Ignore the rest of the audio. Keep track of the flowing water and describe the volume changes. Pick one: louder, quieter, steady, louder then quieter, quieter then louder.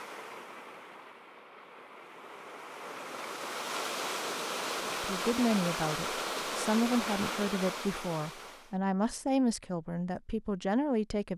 louder.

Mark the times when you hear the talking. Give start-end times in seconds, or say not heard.
4.9-11.3.